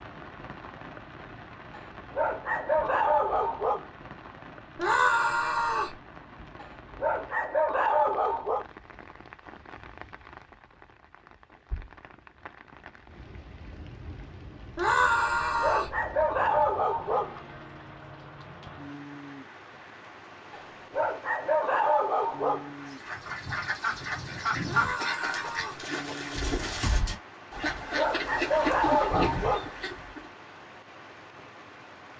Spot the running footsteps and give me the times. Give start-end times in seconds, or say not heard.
not heard.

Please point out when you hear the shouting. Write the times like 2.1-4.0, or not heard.
4.8-6.0, 14.8-15.9, 24.6-25.9.